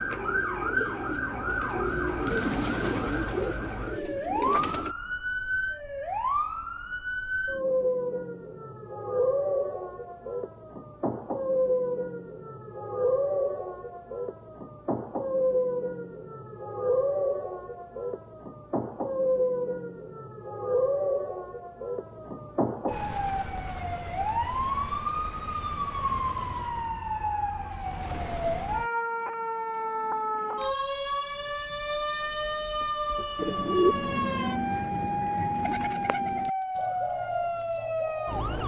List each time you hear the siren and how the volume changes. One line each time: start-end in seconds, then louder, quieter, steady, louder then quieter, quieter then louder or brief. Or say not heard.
0.0-38.6 steady.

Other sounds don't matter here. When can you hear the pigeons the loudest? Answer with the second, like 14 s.
34 s.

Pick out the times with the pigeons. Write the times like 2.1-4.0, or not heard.
0.0-5.0, 33.4-38.4.